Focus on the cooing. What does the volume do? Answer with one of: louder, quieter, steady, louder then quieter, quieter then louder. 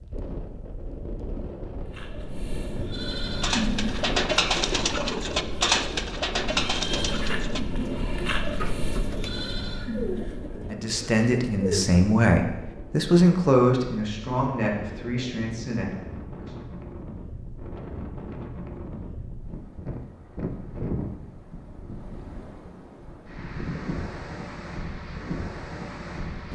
quieter.